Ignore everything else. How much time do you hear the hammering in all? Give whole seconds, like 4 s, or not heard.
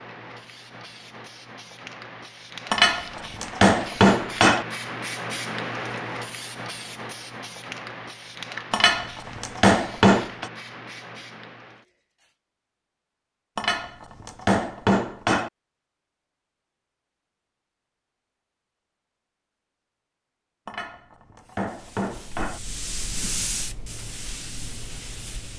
8 s.